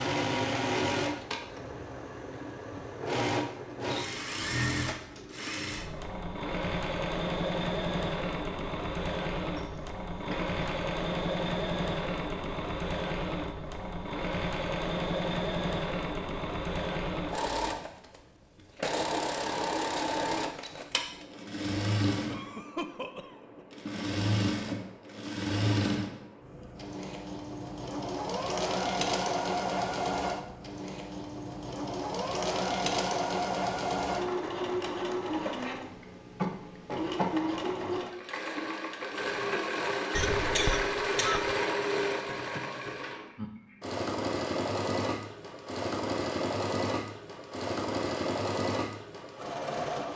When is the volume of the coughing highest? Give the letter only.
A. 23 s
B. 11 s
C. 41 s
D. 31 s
C.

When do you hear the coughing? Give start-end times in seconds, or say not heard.
9.6-10.8, 22.2-23.6, 40.1-41.5.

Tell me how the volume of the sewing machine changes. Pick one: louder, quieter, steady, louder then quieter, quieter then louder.
steady.